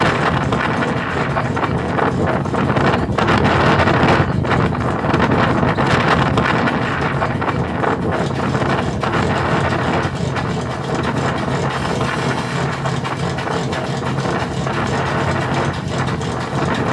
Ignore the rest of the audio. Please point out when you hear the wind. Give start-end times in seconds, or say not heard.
0.0-16.8.